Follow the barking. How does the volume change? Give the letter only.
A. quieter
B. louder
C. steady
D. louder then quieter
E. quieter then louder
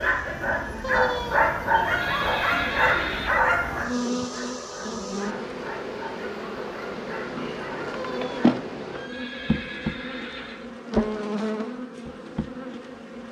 A.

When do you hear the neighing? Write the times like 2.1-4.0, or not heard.
0.8-3.4, 8.0-10.7.